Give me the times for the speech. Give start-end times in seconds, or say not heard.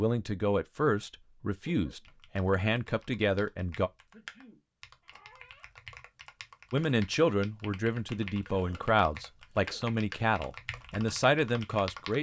0.0-3.9, 6.7-12.1.